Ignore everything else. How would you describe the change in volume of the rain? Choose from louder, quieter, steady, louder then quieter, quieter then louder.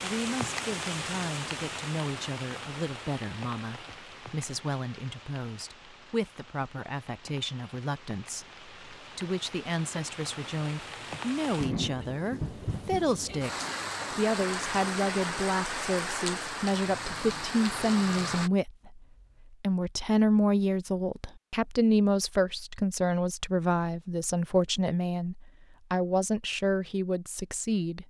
quieter then louder.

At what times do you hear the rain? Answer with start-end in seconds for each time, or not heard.
0.0-18.5.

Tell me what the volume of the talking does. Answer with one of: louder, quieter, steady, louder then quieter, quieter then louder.
louder.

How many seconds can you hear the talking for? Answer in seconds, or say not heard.
28 s.